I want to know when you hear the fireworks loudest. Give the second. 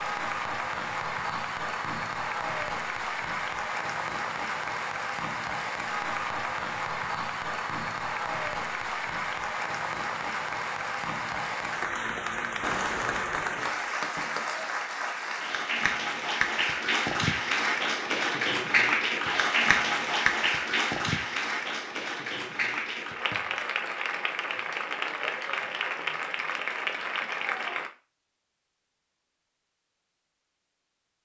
13 s.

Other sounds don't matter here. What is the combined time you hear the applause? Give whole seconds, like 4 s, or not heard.
28 s.